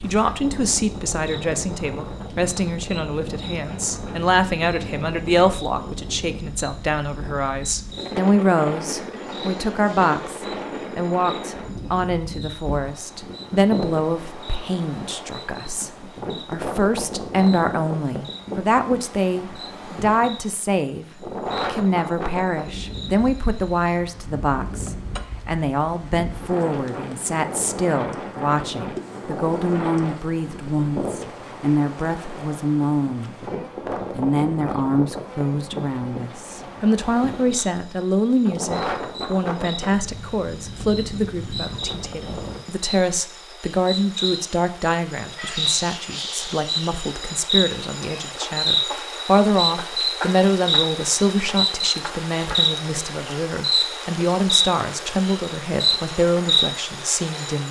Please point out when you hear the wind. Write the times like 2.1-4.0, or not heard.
0.0-42.6.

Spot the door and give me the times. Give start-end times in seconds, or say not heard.
not heard.